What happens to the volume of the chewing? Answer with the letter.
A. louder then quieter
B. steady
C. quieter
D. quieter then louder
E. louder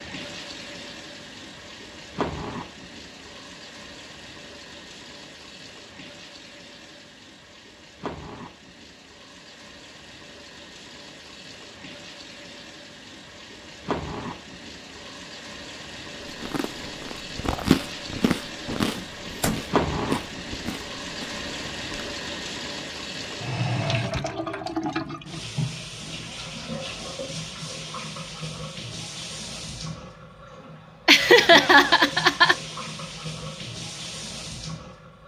A.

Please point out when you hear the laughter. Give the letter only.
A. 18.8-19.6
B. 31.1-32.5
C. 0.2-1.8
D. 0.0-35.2
B.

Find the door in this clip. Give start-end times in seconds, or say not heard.
18.8-19.6.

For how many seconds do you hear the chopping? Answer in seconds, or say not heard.
not heard.